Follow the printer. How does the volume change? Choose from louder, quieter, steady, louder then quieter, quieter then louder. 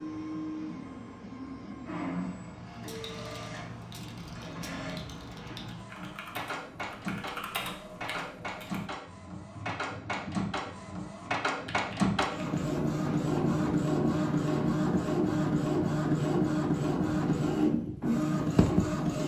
louder.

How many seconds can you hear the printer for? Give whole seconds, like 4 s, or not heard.
19 s.